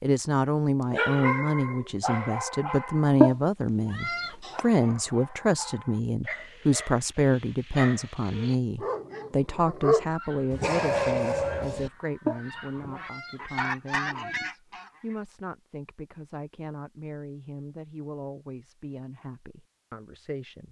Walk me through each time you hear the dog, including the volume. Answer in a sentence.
You can hear the dog briefly from 0.9 to 3.7 s; and from 4.5 to 11.9 s, getting louder.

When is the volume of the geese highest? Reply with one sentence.
The volume of the geese peaks at 14 seconds.